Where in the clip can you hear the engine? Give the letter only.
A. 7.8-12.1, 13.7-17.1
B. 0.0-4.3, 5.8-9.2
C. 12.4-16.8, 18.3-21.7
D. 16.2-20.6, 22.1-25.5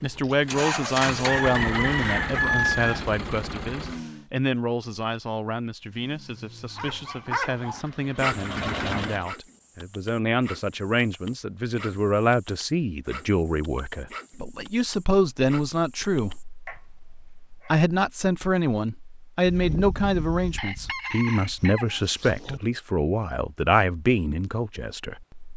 B.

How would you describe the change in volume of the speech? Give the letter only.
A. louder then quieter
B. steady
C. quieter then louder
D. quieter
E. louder
C.